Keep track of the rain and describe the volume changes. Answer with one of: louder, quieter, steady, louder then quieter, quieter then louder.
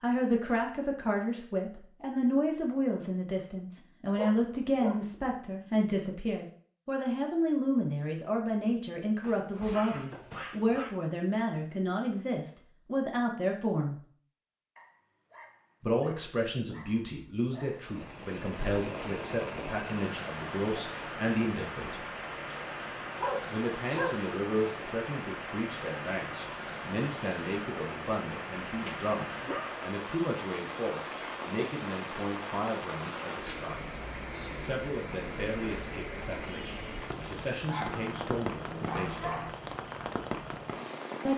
steady.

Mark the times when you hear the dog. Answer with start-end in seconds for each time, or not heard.
4.2-5.0, 9.2-11.0, 14.8-17.7, 23.2-24.2, 28.6-29.8, 37.6-39.5.